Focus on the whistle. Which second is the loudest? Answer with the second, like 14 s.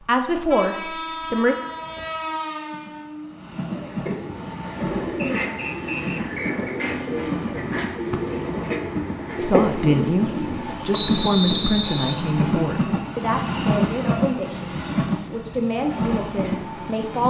11 s.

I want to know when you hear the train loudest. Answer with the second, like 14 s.
14 s.